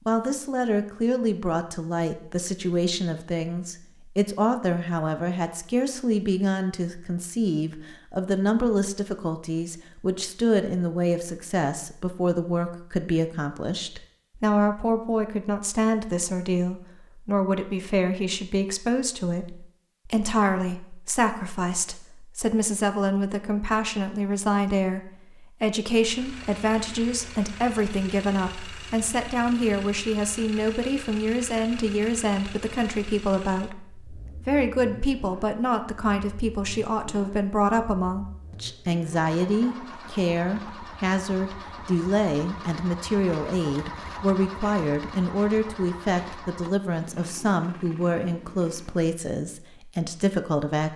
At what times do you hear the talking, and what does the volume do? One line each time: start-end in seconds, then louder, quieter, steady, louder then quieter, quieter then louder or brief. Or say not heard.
0.1-50.9 steady.